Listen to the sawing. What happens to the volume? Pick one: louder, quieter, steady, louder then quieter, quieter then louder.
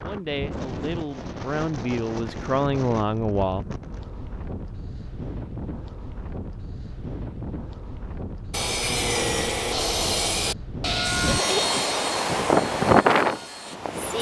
quieter.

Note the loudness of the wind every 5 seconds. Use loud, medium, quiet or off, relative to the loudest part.
quiet, quiet, loud.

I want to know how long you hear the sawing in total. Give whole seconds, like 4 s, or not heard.
5 s.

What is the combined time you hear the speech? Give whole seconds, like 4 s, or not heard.
4 s.